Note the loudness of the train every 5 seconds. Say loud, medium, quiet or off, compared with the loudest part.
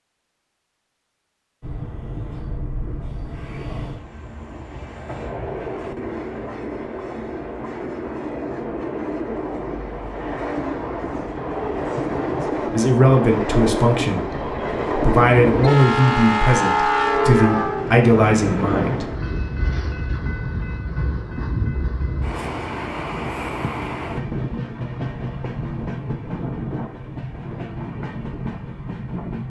quiet, medium, loud, loud, medium, medium.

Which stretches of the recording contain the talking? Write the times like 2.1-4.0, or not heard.
12.7-19.1.